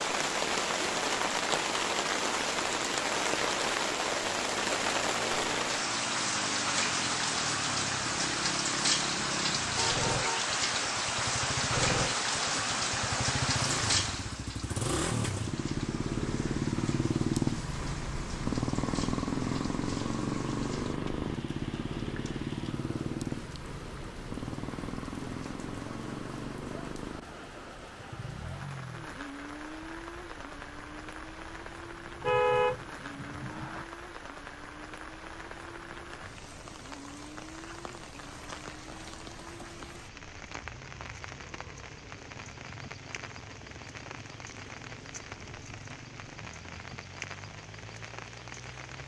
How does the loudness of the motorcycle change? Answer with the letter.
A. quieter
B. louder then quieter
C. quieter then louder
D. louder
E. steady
B.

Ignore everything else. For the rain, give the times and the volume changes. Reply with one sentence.
The rain can be heard from 0.0 to 49.0 s, getting quieter.